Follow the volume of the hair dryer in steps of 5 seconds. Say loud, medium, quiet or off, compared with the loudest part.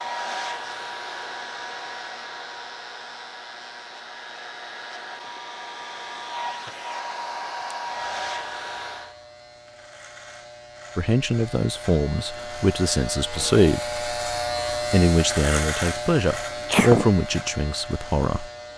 loud, loud, off, off.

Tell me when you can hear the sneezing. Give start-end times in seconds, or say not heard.
16.3-17.1.